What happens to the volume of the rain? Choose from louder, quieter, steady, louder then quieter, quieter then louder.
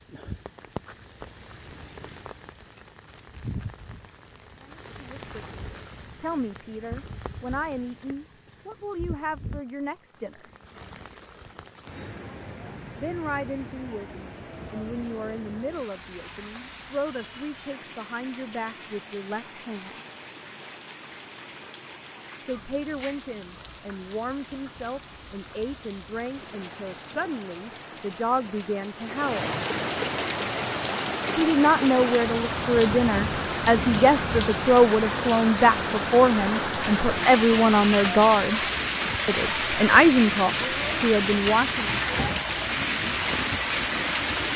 louder.